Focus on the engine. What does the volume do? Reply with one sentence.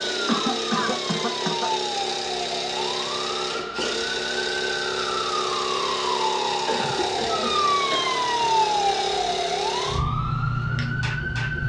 The loudness of the engine stays about the same.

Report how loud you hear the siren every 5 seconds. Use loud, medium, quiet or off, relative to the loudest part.
medium, loud, medium.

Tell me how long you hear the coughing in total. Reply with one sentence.
You can hear the coughing for 3 seconds altogether.